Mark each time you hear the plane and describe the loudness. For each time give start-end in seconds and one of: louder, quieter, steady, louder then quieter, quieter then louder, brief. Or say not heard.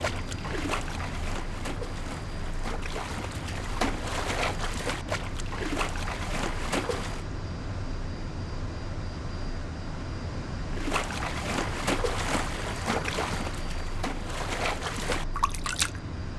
0.0-16.3 steady.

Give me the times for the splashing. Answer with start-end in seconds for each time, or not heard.
0.0-7.2, 10.7-16.0.